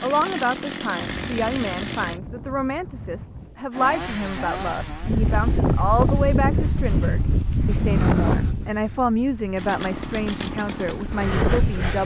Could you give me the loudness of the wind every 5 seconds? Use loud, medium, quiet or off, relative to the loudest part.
quiet, loud, loud.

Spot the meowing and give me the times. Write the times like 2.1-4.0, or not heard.
not heard.